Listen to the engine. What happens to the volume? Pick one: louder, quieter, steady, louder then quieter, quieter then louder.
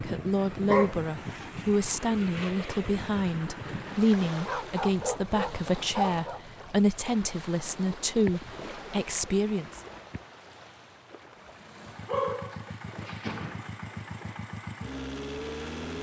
louder.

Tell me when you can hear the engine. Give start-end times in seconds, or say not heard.
11.3-15.9.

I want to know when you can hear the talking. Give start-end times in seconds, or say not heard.
0.0-9.8.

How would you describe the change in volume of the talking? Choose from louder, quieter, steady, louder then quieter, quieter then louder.
steady.